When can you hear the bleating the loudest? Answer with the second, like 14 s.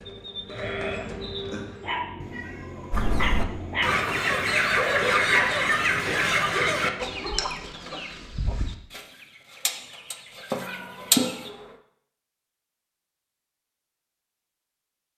1 s.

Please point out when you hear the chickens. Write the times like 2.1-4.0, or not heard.
2.9-11.5.